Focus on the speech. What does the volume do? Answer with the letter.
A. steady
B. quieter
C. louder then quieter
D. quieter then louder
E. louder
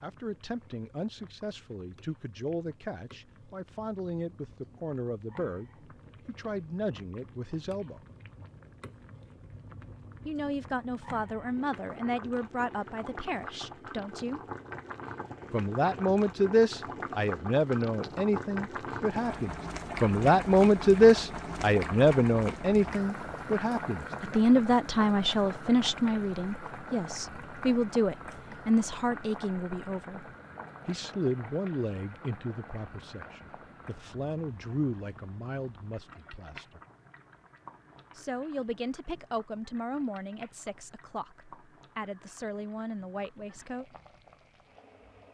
C.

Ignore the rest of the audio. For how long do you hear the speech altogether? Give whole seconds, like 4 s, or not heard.
39 s.